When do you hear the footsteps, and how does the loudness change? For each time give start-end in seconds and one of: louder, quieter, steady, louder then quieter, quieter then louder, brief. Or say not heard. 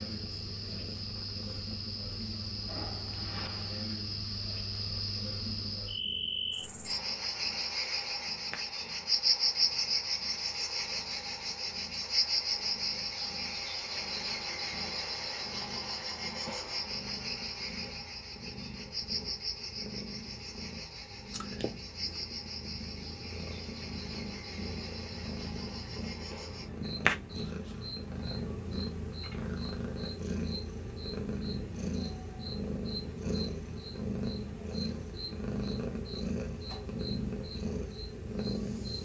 not heard.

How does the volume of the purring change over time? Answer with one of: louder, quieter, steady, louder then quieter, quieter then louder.
louder.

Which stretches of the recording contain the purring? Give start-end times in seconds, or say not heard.
0.0-39.0.